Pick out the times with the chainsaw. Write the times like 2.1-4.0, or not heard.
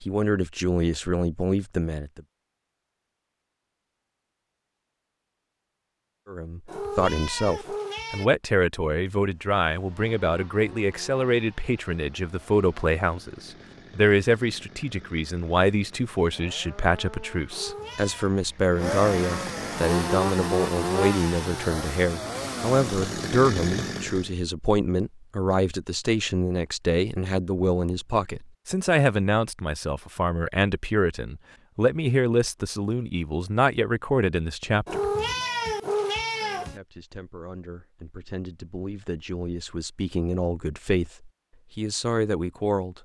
9.2-24.3.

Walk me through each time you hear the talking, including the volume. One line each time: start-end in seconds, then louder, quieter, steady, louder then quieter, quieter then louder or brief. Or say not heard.
0.0-2.2 brief
6.2-35.0 steady
36.5-42.9 louder.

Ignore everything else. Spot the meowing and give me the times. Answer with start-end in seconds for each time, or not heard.
6.7-8.3, 17.5-18.3, 34.9-36.8.